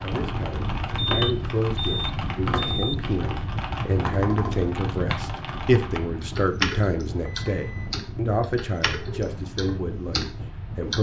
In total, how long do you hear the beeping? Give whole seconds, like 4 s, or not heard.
3 s.